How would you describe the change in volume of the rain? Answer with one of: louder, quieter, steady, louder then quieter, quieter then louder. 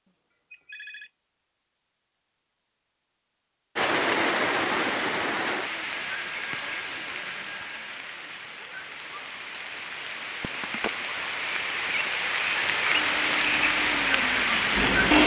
quieter then louder.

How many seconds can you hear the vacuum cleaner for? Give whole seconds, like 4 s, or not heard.
2 s.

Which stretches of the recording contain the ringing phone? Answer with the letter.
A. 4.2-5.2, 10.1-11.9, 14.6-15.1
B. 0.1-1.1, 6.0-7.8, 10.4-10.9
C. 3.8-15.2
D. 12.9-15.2
B.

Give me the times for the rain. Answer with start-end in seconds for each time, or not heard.
3.8-15.2.